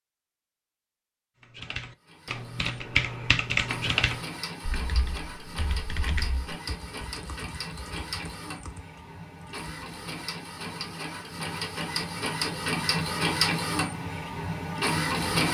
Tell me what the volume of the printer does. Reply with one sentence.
The volume of the printer goes up.